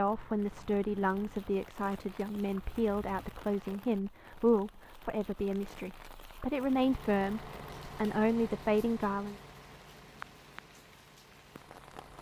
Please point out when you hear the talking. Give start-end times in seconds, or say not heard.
0.0-9.3.